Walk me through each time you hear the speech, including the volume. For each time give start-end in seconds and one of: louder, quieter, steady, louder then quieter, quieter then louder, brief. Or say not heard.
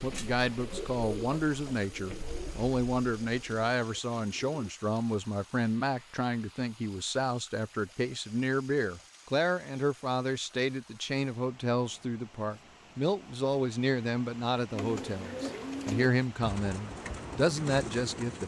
0.0-18.4 steady.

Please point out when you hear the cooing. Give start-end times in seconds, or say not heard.
0.0-4.7, 14.7-18.4.